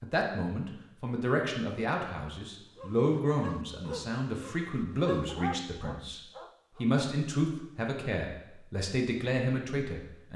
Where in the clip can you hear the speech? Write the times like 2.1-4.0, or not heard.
0.0-10.3.